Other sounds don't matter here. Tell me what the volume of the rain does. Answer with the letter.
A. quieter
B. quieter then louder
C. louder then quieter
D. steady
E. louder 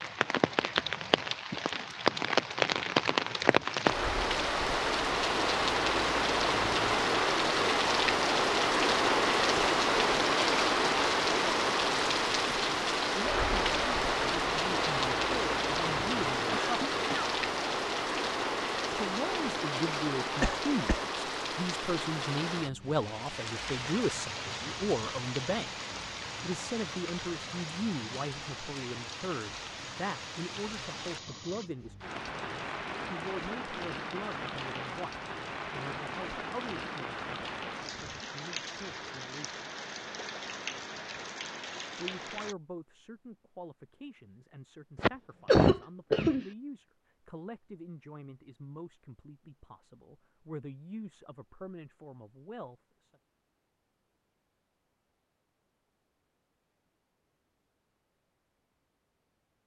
A.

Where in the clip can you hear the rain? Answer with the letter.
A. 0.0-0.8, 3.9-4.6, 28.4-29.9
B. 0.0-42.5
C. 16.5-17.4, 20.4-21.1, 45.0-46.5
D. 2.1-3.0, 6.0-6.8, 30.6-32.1
B.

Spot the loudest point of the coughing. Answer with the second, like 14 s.
46 s.